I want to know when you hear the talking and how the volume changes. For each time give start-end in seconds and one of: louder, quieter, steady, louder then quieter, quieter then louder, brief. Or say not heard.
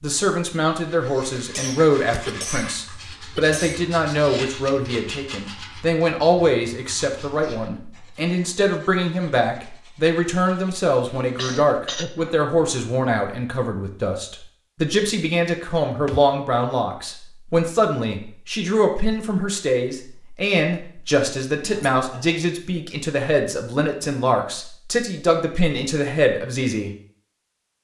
0.0-26.9 steady.